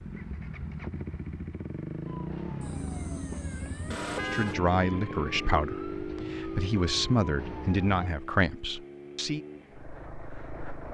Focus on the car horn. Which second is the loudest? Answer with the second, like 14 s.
4 s.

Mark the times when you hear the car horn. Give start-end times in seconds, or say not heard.
2.6-4.5.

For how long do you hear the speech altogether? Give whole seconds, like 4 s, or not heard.
5 s.